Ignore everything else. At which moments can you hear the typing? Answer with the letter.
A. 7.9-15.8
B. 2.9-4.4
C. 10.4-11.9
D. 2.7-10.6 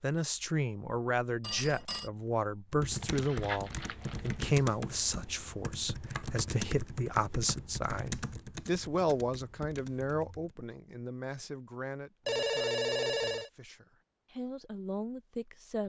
D.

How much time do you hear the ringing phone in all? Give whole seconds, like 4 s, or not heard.
2 s.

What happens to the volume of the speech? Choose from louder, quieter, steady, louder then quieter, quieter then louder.
quieter.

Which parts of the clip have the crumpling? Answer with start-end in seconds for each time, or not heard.
2.9-4.4.